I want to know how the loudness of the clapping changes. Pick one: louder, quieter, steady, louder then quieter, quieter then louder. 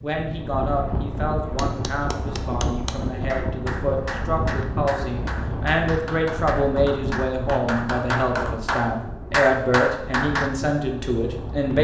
louder.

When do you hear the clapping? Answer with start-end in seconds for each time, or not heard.
1.6-10.5.